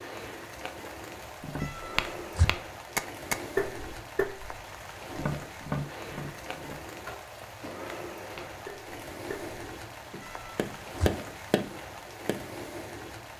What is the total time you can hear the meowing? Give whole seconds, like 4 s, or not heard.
2 s.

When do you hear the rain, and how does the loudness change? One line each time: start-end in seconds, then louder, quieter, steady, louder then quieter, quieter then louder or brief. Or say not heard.
0.0-13.3 steady.